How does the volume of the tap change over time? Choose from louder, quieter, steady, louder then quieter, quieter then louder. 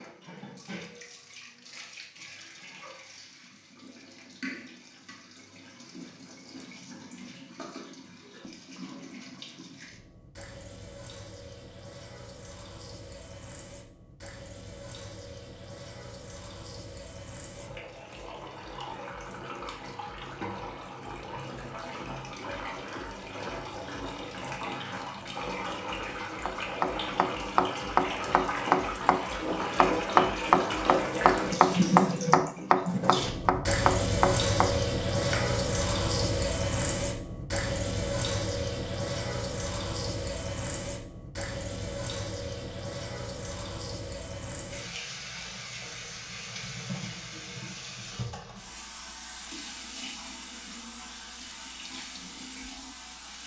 louder then quieter.